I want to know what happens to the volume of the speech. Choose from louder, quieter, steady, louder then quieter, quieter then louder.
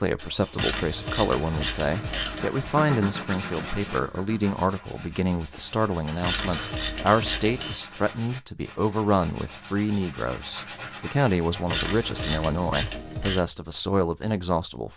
steady.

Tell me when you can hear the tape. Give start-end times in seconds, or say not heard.
not heard.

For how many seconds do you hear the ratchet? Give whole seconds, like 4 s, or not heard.
5 s.